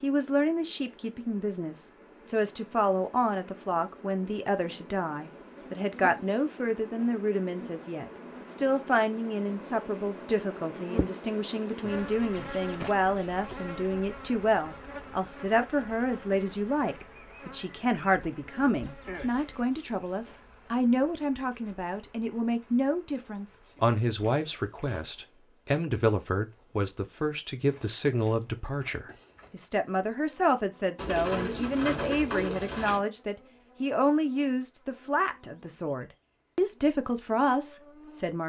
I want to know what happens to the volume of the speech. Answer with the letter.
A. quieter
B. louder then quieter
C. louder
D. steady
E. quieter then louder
D.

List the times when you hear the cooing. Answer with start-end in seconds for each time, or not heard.
30.9-33.0.